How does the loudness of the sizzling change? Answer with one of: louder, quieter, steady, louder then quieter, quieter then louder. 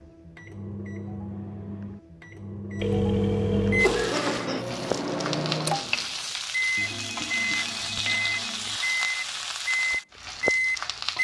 steady.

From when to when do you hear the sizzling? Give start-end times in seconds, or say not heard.
3.8-11.2.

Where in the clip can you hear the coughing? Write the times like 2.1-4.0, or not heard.
3.6-4.7.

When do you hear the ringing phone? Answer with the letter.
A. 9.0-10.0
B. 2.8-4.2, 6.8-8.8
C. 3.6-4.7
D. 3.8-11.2
B.